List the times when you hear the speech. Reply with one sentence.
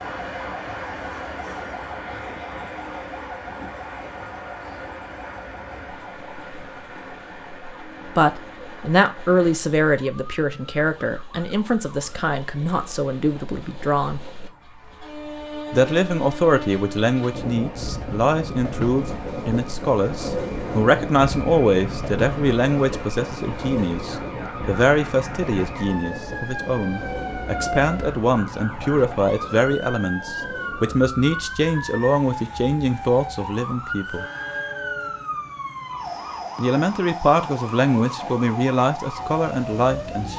The speech can be heard from 8.1 to 14.2 s, from 15.7 to 34.2 s and from 36.5 to 40.3 s.